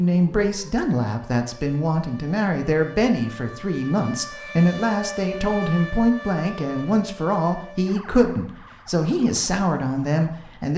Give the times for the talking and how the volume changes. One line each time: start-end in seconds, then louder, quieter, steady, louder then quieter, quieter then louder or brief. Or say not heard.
0.0-10.7 steady.